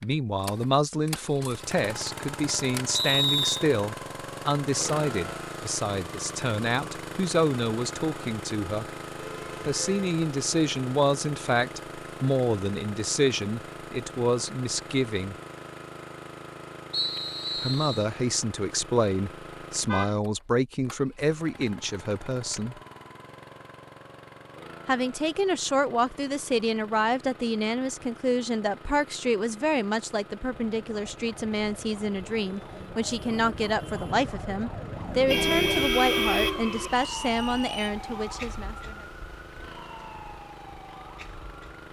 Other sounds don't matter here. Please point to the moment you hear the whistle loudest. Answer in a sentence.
The loudest moment of the whistle is at 3 seconds.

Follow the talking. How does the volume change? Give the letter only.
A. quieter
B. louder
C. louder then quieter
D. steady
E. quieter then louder
D.